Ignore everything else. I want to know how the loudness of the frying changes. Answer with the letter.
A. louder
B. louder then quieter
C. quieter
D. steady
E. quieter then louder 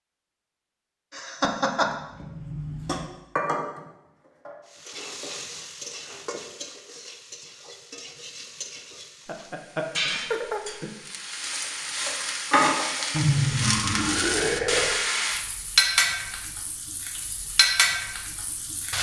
A.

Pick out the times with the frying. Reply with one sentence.
You can hear the frying from 4.7 to 18.9 s.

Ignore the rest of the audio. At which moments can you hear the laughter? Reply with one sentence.
You can hear the laughter from 1.1 to 1.9 s, from 9.2 to 10.9 s and from 13.1 to 15.0 s.